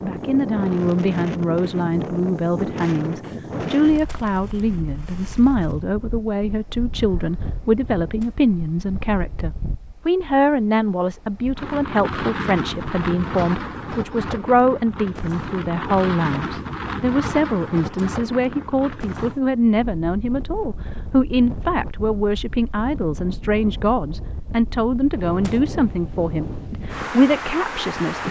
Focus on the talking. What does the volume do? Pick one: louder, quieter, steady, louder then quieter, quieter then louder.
steady.